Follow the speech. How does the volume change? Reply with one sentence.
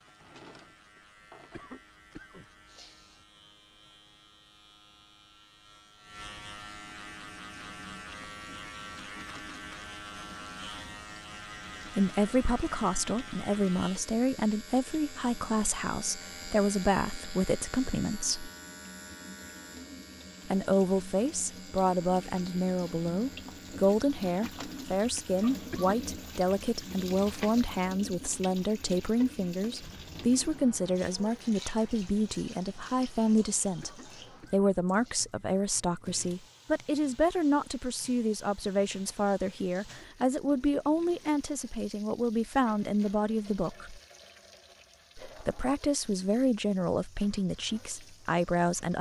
The volume of the speech stays about the same.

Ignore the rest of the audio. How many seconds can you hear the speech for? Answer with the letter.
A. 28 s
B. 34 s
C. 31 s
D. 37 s
B.